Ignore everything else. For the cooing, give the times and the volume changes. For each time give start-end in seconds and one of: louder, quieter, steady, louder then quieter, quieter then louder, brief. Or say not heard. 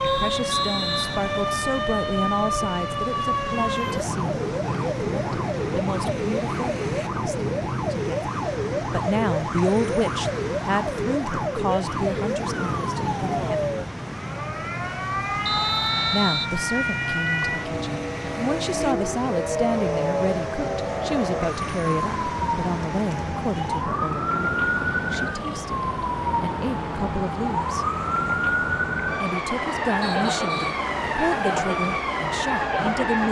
not heard.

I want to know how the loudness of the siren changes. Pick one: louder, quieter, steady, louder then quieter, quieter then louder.
steady.